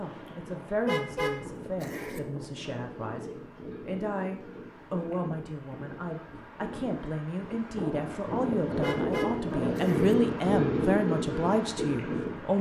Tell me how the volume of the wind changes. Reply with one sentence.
The volume of the wind goes up.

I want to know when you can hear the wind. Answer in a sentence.
You can hear the wind from 0.0 to 12.5 s.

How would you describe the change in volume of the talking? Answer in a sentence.
The volume of the talking goes up.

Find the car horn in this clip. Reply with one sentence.
The car horn can be heard from 0.8 to 2.2 s and from 8.8 to 10.2 s.